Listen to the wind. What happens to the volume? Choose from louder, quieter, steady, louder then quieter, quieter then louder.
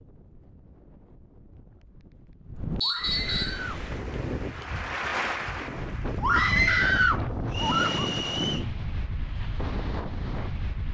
louder.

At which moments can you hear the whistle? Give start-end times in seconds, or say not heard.
2.8-3.6, 7.5-8.7.